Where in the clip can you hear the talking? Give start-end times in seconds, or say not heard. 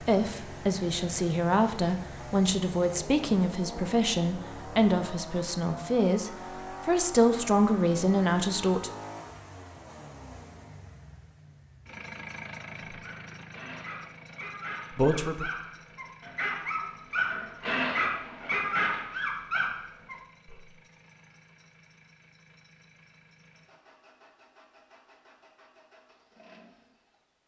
0.0-8.9, 14.9-15.4.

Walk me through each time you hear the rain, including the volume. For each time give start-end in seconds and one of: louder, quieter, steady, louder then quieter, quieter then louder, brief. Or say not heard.
not heard.